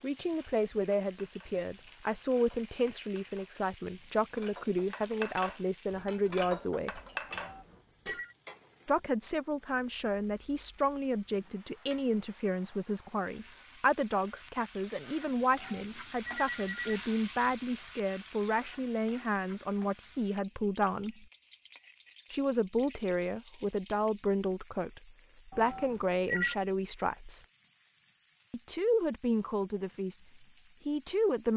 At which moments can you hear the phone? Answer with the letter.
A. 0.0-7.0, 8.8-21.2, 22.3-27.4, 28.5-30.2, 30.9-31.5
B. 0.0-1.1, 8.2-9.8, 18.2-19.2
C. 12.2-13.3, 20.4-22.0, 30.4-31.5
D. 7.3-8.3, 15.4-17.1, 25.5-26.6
D.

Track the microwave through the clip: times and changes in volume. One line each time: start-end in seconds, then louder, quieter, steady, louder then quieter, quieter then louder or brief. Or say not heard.
not heard.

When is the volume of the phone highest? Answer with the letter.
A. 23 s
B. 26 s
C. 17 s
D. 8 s
B.